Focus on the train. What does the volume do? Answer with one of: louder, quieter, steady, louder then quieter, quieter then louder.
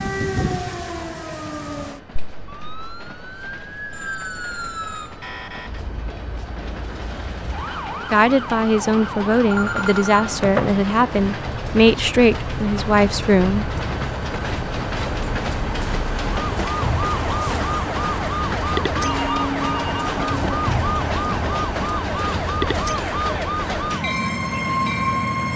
louder.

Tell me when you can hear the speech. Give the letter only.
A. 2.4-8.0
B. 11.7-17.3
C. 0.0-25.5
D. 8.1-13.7
D.